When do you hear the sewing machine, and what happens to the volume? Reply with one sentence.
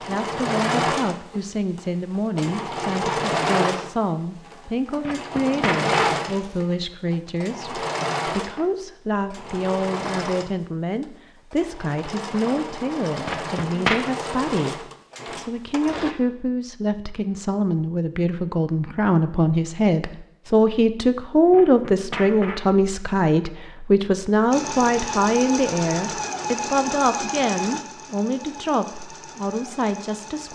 You can hear the sewing machine from 0.0 to 16.1 s, getting quieter; and from 24.5 to 30.5 s, getting quieter.